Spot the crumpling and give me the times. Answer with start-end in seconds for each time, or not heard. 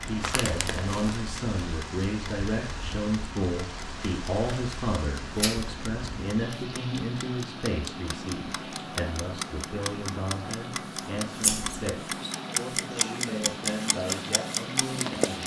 0.2-1.2.